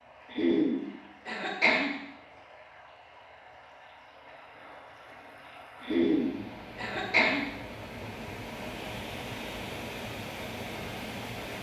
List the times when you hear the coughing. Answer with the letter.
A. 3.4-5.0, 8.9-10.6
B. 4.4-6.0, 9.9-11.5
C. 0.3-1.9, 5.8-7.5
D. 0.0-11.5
C.